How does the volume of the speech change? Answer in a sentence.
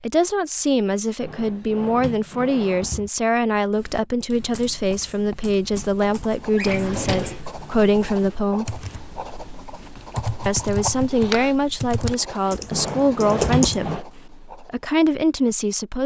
The volume of the speech stays about the same.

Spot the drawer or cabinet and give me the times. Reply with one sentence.
The drawer or cabinet can be heard from 1.2 to 3.1 s, from 6.5 to 7.4 s and from 12.7 to 14.1 s.